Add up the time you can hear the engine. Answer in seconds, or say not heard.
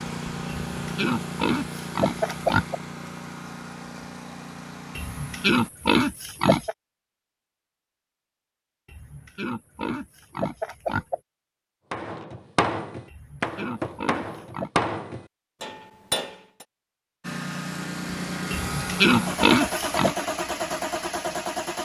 10 s.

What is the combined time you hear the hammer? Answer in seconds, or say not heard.
5 s.